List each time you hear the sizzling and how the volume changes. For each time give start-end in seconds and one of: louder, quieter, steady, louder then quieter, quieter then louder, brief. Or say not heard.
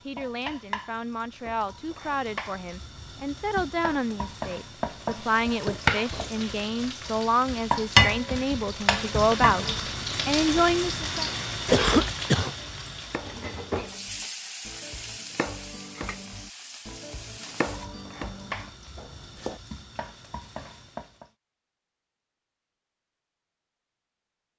0.0-21.3 louder then quieter.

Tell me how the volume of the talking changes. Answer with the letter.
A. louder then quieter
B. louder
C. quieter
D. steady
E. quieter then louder
B.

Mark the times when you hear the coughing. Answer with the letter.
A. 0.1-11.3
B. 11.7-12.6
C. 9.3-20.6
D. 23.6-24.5
B.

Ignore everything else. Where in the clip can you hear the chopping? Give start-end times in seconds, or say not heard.
12.0-19.6.